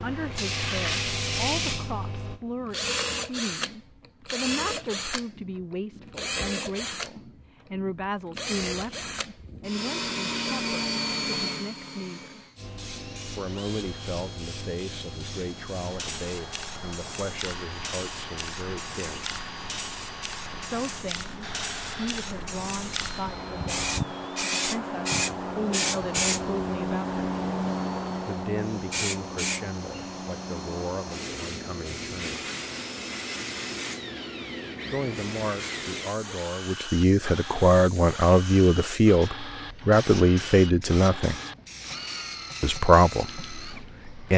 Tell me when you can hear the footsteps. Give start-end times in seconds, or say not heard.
not heard.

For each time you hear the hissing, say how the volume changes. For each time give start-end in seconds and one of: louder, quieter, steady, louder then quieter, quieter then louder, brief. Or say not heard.
0.0-2.8 brief
12.6-44.3 louder then quieter.